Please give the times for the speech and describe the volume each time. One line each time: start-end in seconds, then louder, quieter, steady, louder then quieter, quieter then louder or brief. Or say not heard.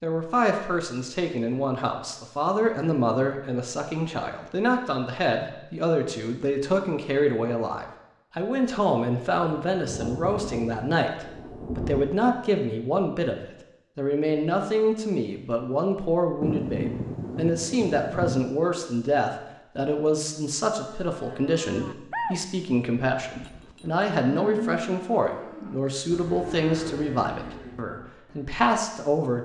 0.0-29.3 steady.